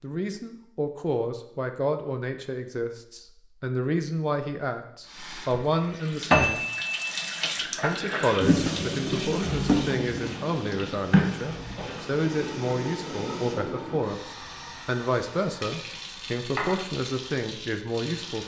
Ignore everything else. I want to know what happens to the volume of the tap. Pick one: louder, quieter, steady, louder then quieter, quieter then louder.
quieter.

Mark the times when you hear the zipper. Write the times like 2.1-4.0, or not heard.
not heard.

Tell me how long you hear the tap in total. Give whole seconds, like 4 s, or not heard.
13 s.